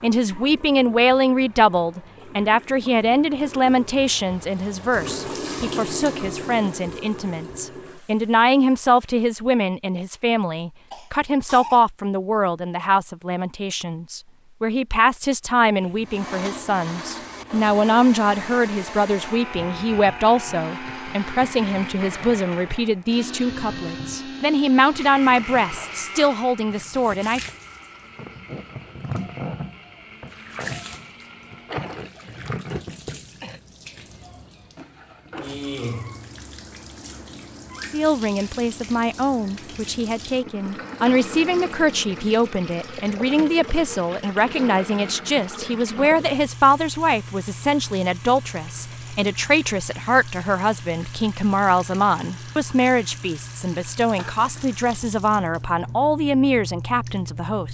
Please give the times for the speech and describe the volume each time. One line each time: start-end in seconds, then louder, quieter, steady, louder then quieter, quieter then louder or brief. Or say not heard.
0.0-27.4 steady
37.9-57.6 steady.